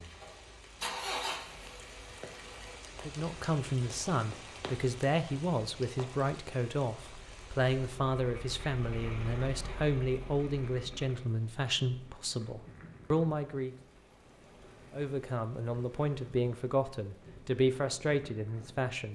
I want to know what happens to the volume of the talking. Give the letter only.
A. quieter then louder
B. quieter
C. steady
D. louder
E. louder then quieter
C.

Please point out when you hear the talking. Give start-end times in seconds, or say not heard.
3.0-13.8, 14.9-19.1.